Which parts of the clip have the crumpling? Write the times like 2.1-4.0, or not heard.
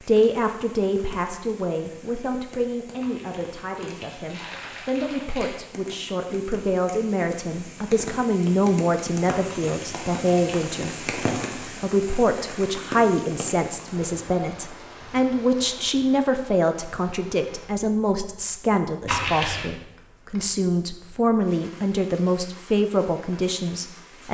3.0-5.6, 9.4-10.6, 19.1-19.7.